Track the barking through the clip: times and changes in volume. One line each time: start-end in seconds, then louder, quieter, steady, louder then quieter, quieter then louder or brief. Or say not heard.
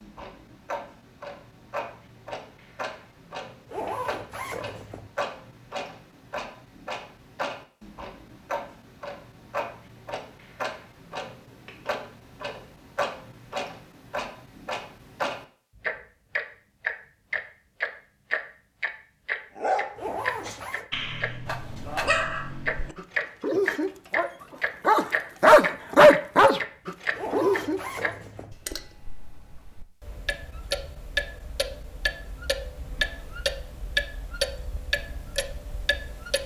19.6-28.1 louder then quieter.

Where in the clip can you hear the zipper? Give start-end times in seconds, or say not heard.
3.6-5.1, 19.9-20.9, 27.1-28.6.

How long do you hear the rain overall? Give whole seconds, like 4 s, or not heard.
not heard.